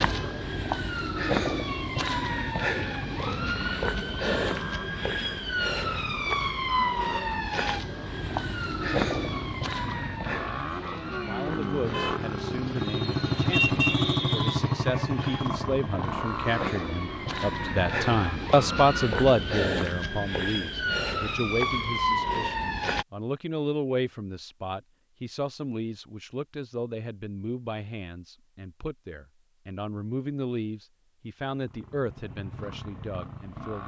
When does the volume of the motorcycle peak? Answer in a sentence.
The volume of the motorcycle peaks at 14 seconds.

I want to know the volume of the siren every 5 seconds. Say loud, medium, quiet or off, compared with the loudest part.
loud, loud, medium, loud, loud, off, off.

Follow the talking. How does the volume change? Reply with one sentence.
The loudness of the talking goes up, then down.